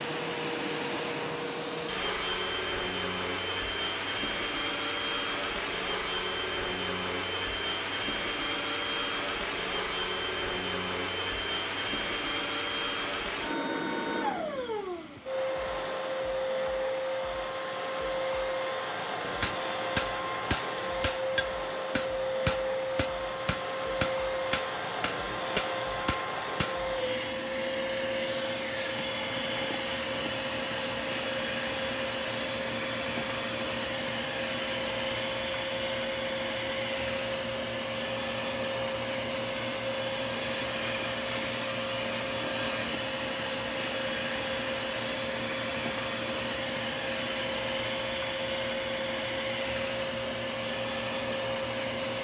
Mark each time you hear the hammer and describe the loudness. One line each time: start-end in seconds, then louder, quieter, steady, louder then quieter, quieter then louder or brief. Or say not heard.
19.2-26.9 steady.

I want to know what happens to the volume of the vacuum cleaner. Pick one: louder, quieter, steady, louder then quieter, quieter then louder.
steady.